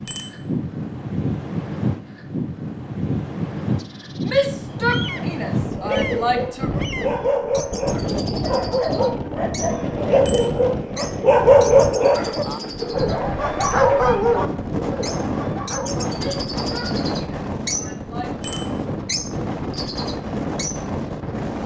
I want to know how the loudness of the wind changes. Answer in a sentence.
The loudness of the wind stays about the same.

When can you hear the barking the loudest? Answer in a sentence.
The loudest moment of the barking is at 12 seconds.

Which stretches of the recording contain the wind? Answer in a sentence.
You can hear the wind from 0.0 to 21.6 s.